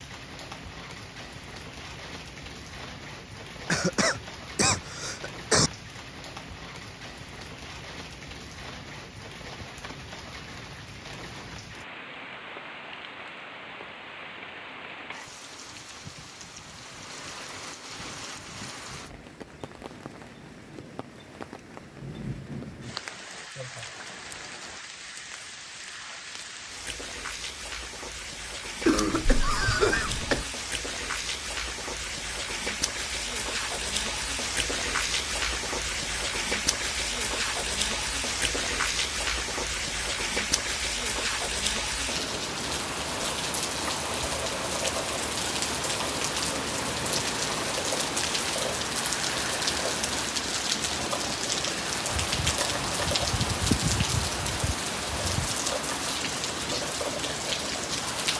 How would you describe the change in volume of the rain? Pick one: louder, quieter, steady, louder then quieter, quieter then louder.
louder.